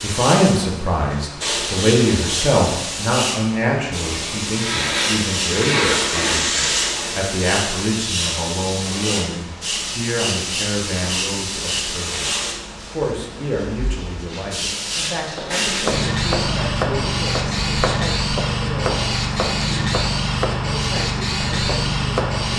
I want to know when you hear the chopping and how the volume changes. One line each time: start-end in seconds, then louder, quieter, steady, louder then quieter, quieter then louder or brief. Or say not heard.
15.3-22.5 quieter.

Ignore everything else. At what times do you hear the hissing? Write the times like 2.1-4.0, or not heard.
0.0-22.5.